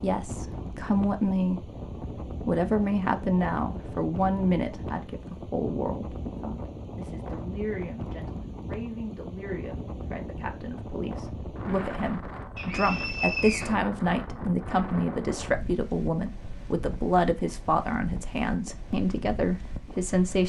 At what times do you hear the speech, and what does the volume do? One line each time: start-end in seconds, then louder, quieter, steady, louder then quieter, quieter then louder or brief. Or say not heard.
0.0-1.6 brief
2.5-20.4 quieter then louder.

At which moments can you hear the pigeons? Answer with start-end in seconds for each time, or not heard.
not heard.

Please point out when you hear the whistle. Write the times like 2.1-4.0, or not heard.
12.6-13.8.